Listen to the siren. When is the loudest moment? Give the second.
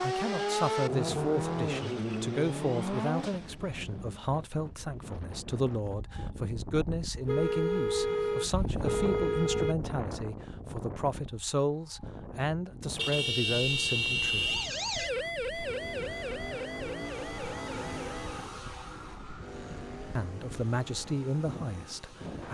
15 s.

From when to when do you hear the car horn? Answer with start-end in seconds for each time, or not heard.
7.2-9.8, 12.9-14.7.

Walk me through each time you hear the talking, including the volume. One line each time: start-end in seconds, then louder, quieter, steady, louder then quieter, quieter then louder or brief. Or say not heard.
0.0-14.5 steady
20.1-22.4 brief.